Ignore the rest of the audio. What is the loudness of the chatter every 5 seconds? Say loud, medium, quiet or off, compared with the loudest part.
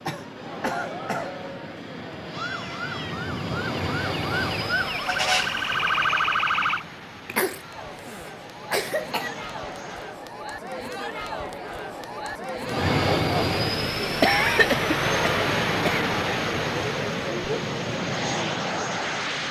medium, medium, loud, loud.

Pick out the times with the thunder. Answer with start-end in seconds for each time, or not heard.
not heard.